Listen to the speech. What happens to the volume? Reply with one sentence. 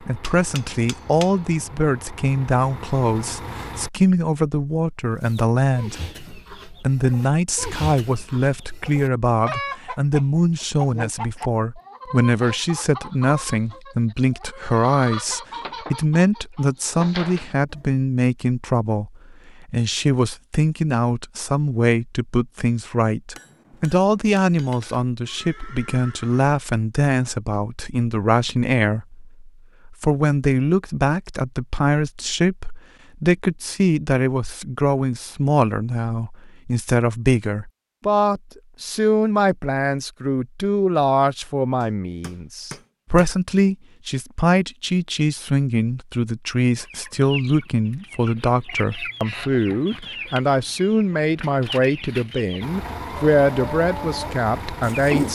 The volume of the speech stays about the same.